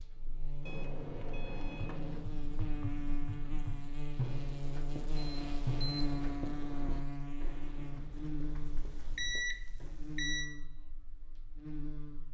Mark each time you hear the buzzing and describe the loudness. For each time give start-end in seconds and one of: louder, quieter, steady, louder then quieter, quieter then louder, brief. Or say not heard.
0.0-12.2 louder then quieter.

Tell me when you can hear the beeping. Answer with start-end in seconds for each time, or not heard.
0.7-2.3, 5.2-6.2, 8.7-10.4.